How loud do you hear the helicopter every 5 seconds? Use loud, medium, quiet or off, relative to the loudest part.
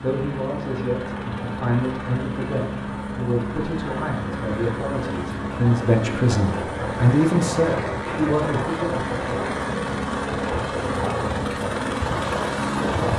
medium, loud, loud.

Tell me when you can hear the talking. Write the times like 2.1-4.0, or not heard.
0.0-9.6.